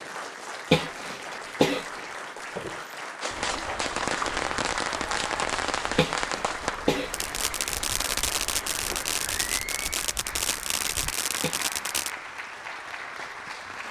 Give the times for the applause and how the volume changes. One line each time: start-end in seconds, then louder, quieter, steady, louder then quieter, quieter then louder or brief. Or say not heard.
0.0-13.8 steady.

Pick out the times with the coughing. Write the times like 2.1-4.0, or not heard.
0.7-2.0, 6.0-7.8, 11.4-12.1.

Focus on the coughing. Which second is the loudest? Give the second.
1 s.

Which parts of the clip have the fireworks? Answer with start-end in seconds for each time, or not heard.
3.2-12.1.